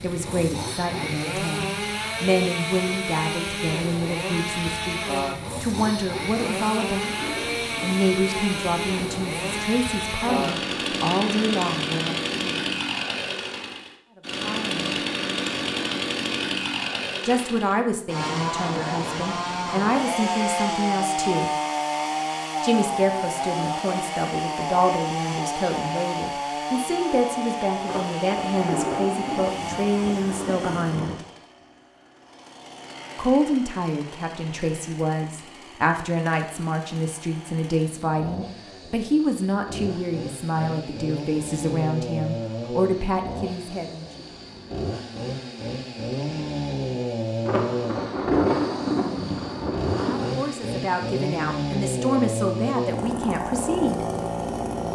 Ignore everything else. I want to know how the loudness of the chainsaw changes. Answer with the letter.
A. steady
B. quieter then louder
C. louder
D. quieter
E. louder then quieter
B.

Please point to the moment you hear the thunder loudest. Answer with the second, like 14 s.
48 s.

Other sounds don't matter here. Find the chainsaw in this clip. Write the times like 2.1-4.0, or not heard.
0.0-54.9.